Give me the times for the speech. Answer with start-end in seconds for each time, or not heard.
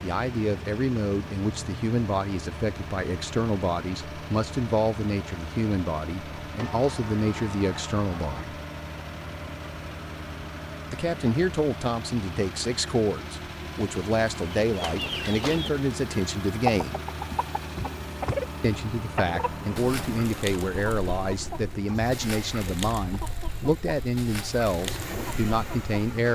0.0-8.5, 10.9-17.0, 18.6-26.3.